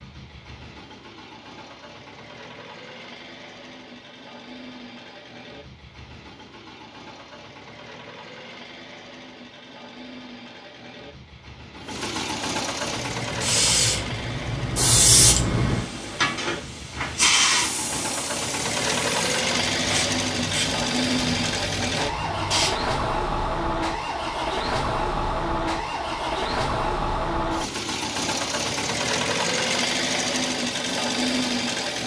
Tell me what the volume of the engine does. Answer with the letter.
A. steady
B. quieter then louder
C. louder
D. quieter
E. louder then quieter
C.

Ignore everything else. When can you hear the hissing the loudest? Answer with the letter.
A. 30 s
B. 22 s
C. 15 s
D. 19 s
C.